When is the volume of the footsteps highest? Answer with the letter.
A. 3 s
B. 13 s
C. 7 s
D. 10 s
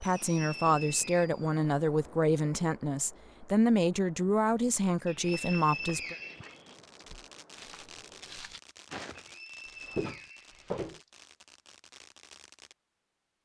D.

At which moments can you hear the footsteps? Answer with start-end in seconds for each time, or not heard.
5.2-11.0.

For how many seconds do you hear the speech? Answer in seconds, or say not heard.
6 s.